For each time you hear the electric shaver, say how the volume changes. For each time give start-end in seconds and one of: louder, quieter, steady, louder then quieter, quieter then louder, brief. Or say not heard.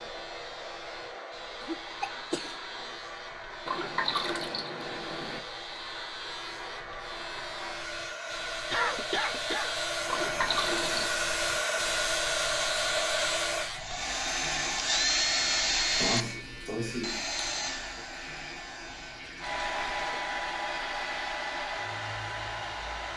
0.0-23.1 louder then quieter.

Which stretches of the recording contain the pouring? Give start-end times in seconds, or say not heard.
3.6-5.4, 10.1-11.1, 18.9-20.2.